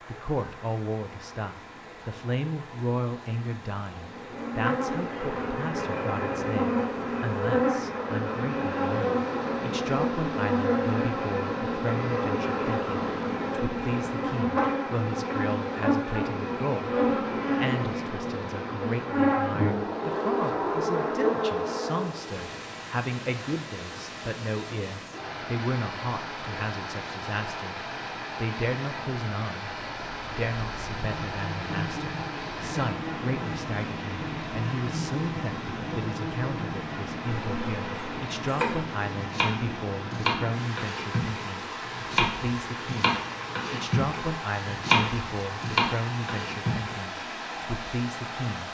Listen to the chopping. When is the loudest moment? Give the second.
45 s.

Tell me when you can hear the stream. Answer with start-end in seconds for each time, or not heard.
0.0-48.6.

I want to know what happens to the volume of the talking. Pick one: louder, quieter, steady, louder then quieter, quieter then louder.
steady.